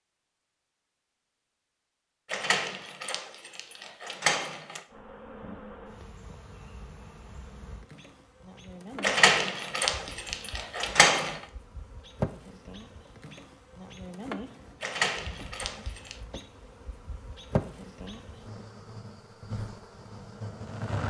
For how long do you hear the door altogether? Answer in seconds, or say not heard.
6 s.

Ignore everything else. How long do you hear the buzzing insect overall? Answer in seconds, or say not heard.
16 s.